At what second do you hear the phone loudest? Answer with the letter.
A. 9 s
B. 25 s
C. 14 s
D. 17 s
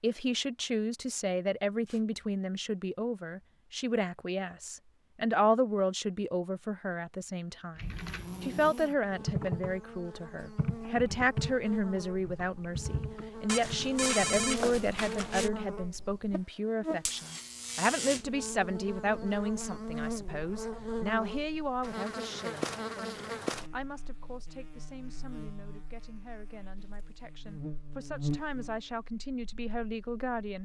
C.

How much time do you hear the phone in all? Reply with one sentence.
The phone can be heard for 2 seconds in total.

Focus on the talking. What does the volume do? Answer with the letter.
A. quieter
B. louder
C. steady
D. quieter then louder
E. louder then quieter
A.